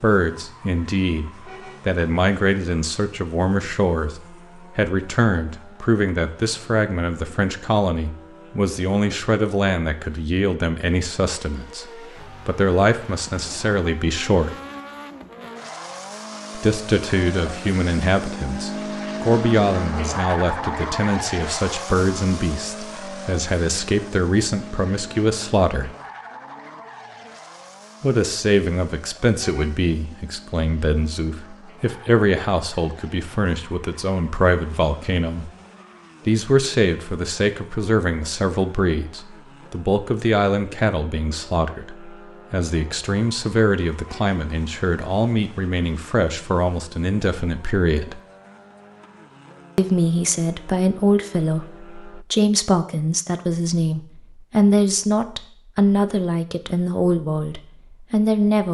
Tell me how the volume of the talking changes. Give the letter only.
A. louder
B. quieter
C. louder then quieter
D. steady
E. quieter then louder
D.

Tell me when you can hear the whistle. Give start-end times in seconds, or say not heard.
not heard.